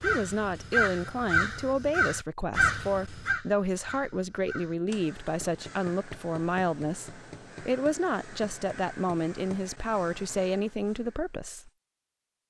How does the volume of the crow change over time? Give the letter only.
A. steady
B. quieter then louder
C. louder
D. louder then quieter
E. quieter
E.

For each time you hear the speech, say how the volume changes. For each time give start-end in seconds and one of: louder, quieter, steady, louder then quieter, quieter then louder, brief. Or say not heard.
0.0-11.7 steady.